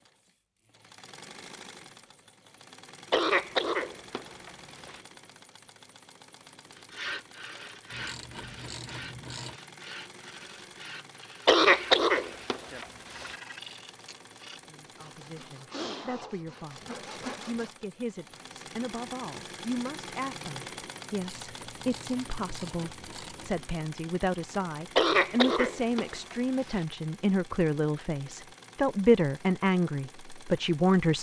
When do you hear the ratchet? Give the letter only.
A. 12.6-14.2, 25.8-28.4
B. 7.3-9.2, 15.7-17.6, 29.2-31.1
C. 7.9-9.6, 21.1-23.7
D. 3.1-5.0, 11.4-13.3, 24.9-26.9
C.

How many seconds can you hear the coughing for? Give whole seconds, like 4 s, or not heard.
6 s.